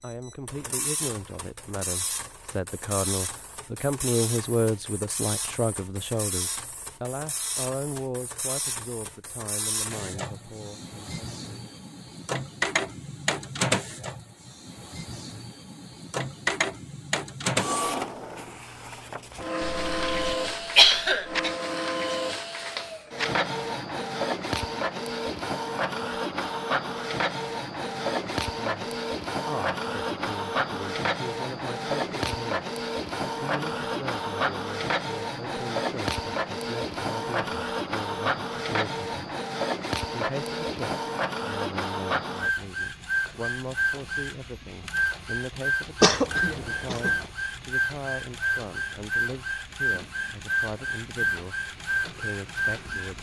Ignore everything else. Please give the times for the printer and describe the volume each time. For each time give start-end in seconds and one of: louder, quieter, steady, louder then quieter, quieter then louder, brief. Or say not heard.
0.0-53.1 louder.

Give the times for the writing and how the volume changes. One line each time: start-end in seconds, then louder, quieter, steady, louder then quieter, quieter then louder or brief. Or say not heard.
not heard.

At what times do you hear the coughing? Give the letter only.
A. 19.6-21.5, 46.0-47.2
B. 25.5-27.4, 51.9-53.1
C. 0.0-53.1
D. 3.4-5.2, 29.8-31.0
A.